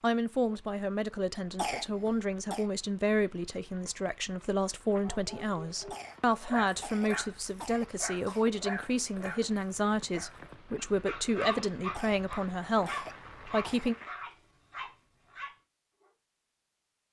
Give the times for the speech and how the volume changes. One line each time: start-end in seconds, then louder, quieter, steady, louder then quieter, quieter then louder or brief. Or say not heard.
0.0-13.9 steady.